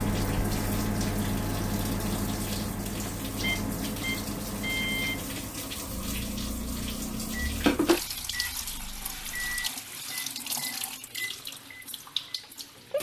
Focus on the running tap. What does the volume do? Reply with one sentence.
The loudness of the running tap goes up, then down.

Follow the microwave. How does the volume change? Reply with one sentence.
The loudness of the microwave goes down.